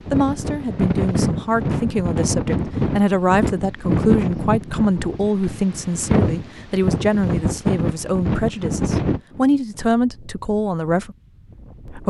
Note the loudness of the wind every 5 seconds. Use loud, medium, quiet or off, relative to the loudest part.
loud, loud, quiet.